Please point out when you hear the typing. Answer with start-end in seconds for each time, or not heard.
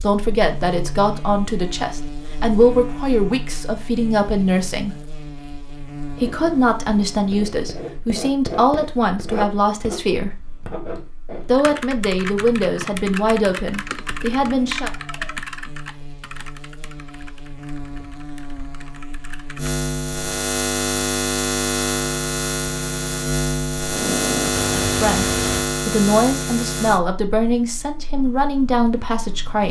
11.5-19.7.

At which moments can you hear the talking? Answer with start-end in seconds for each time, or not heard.
0.0-5.0, 6.1-10.4, 11.4-14.9, 24.8-29.6.